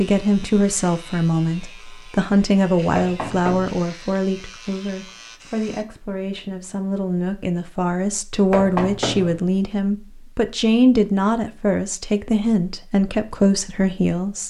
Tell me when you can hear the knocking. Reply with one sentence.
You can hear the knocking from 3.0 to 3.8 s and from 8.5 to 9.4 s.